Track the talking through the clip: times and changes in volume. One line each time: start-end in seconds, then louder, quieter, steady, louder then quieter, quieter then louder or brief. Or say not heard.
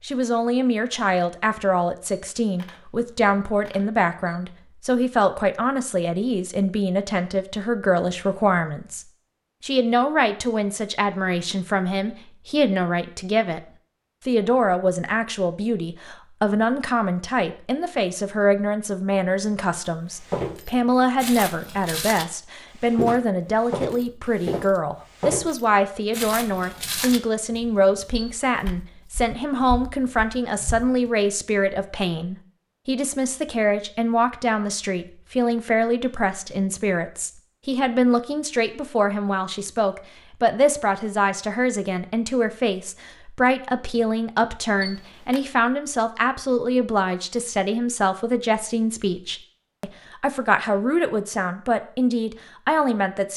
0.0-53.3 steady.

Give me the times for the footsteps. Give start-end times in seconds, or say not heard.
20.1-31.1.